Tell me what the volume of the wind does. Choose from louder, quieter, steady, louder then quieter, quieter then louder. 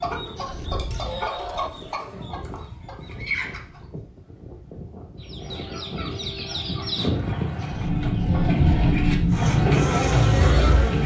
louder.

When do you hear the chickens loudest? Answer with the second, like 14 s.
10 s.